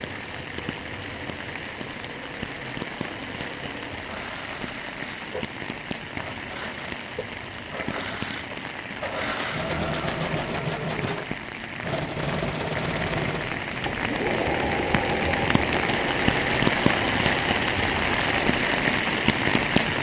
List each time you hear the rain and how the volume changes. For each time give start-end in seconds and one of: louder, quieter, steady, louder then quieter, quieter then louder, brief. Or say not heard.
0.0-19.9 louder.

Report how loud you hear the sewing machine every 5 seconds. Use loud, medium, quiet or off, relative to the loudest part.
quiet, loud, loud, loud.